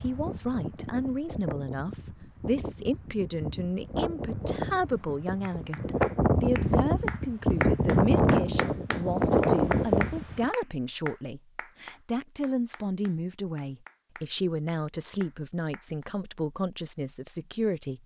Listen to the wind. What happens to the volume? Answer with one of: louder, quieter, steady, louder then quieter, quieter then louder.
louder.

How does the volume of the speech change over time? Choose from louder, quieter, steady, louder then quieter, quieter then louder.
steady.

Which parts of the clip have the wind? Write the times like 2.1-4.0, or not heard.
0.0-10.5.